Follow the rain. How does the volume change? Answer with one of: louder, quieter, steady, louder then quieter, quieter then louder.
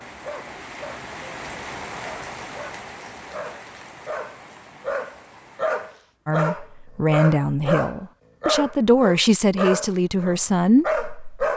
quieter.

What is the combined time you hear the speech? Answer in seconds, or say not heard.
5 s.